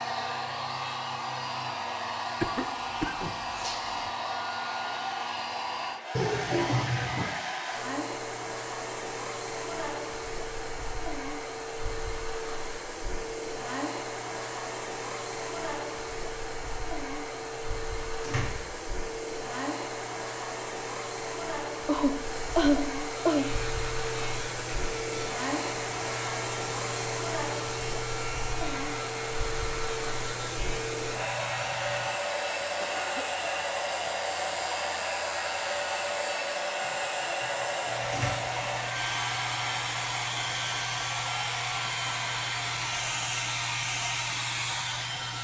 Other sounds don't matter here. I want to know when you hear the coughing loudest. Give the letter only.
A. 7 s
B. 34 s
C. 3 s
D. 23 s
D.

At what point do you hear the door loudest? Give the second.
7 s.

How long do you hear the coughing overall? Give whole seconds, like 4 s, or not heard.
5 s.